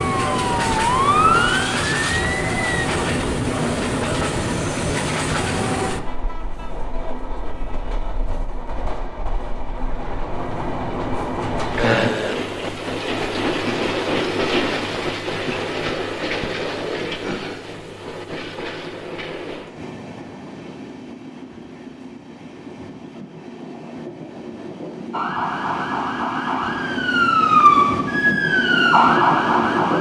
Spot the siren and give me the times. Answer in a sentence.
You can hear the siren from 0.0 to 2.9 s and from 25.1 to 29.9 s.